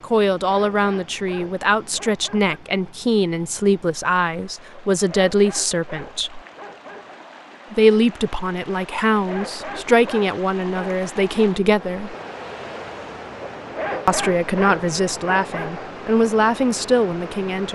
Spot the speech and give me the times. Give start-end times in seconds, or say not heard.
0.0-6.4, 7.7-12.2, 14.1-17.7.